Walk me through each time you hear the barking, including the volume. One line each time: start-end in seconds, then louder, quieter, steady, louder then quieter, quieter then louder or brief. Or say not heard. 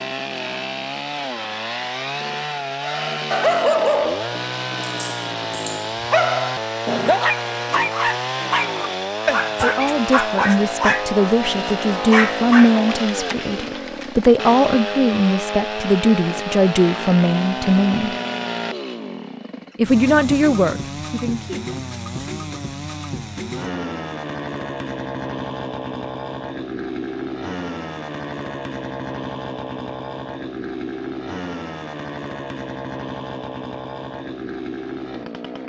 2.8-12.8 steady.